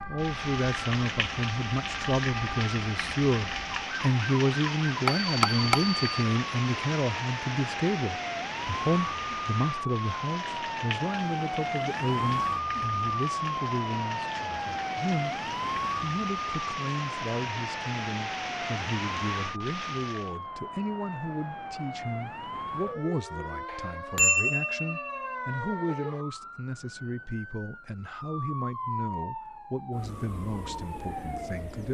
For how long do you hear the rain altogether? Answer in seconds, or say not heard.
20 s.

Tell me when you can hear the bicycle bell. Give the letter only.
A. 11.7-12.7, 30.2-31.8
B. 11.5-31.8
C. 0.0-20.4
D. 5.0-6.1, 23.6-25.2
D.